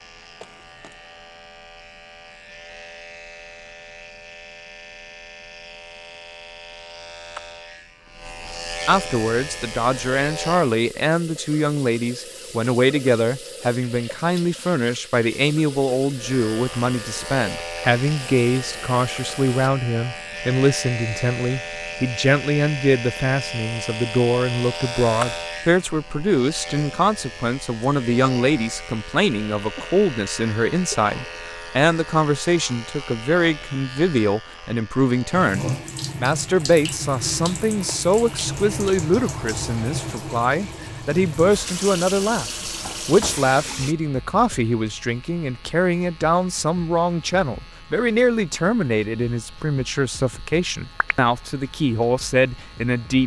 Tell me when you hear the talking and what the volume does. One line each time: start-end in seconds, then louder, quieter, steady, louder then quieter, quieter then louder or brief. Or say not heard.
8.8-53.2 steady.